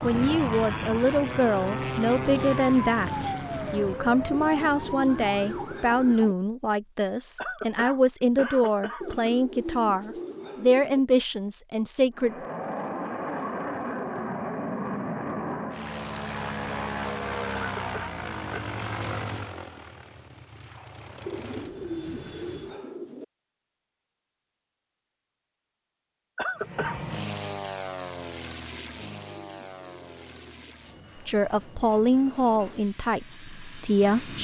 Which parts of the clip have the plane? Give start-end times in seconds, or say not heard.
0.0-5.7, 12.2-22.8, 26.6-34.3.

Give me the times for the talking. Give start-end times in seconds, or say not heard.
0.0-12.3, 31.2-34.3.